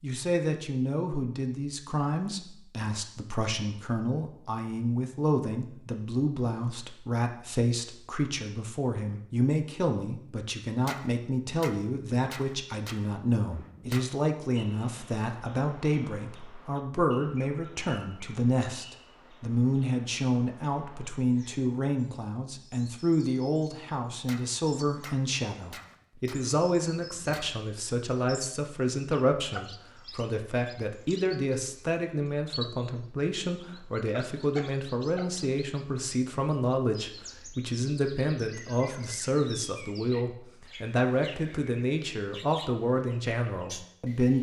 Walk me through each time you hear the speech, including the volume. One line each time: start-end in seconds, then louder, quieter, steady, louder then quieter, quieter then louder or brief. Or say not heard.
0.0-44.3 steady.